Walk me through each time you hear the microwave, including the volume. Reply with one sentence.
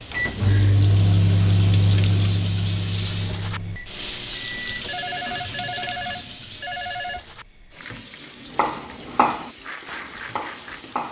The microwave can be heard from 0.1 to 4.8 s, getting quieter.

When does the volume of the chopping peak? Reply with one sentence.
The volume of the chopping peaks at 9 seconds.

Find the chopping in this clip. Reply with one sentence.
The chopping can be heard from 8.6 to 11.0 s.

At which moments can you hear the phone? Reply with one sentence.
You can hear the phone from 4.8 to 7.2 s.